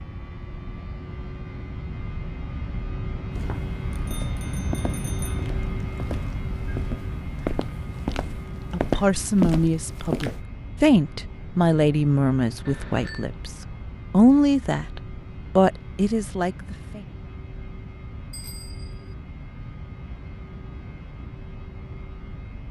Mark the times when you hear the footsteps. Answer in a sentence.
The footsteps can be heard from 3.4 to 10.4 s.